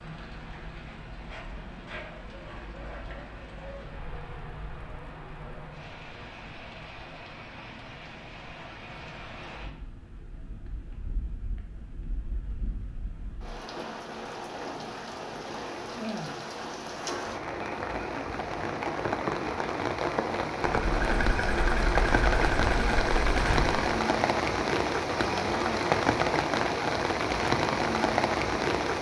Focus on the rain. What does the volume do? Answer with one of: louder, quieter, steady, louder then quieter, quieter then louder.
louder.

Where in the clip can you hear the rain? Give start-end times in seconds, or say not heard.
0.0-28.9.